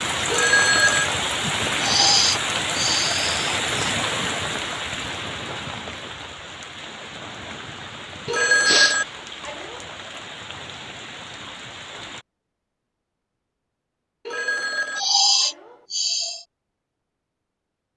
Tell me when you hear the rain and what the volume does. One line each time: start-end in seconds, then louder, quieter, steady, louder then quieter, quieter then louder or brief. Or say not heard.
0.0-12.2 quieter.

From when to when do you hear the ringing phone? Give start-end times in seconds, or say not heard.
0.3-1.1, 8.2-9.8, 14.2-15.8.